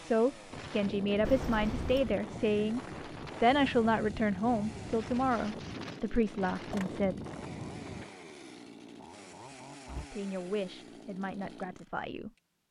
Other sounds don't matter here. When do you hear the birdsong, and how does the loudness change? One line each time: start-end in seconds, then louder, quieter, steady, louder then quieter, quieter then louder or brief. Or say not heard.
not heard.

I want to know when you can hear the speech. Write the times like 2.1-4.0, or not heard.
0.0-2.8, 3.4-7.2, 10.1-12.3.